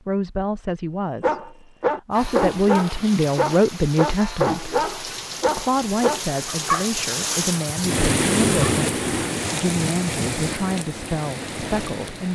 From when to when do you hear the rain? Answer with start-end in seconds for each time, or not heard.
2.1-12.3.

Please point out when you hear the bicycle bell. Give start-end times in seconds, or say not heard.
not heard.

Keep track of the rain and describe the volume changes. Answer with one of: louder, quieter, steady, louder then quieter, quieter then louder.
louder then quieter.